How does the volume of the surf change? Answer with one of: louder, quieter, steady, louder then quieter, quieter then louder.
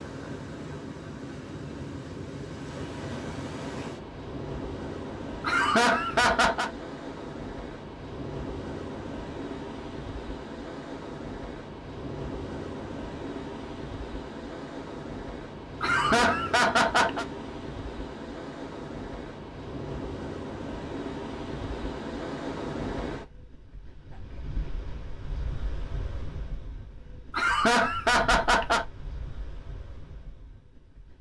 quieter.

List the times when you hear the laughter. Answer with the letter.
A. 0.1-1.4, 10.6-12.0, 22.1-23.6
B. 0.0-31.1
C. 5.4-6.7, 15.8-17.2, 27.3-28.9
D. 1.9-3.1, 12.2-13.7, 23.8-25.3
C.